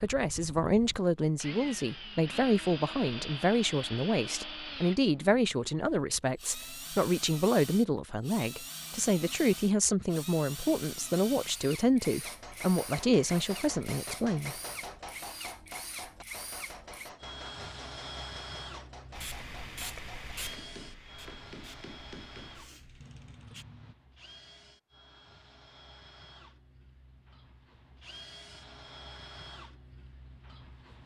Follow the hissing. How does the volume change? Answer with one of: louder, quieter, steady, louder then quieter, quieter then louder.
quieter.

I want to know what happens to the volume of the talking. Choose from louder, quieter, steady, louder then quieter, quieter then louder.
steady.